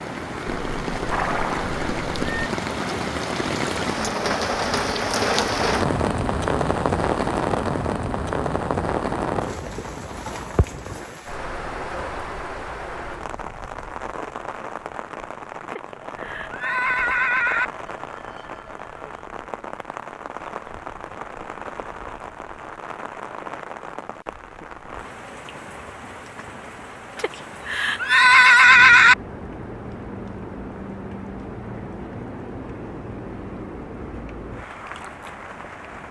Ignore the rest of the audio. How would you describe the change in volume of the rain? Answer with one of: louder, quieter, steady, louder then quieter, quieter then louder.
quieter.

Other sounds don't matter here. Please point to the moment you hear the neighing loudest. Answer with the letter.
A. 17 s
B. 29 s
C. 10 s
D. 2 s
B.